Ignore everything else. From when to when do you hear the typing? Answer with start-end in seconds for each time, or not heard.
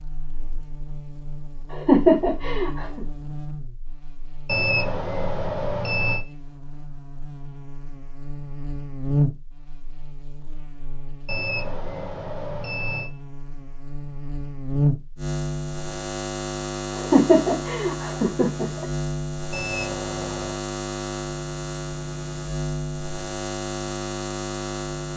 not heard.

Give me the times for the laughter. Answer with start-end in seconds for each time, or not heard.
1.7-3.0, 16.9-18.9.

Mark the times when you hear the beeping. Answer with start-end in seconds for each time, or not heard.
4.5-6.2, 11.2-13.1, 19.5-20.6.